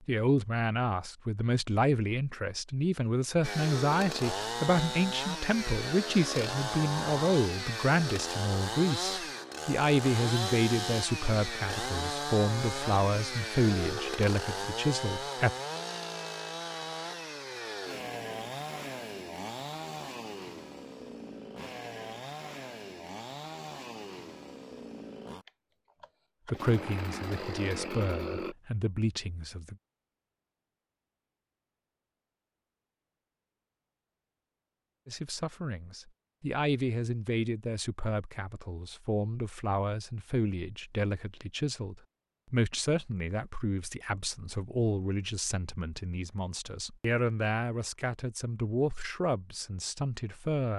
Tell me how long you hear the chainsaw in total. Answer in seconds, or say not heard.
25 s.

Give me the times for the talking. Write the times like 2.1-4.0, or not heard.
0.1-15.5, 26.4-29.8, 35.0-50.7.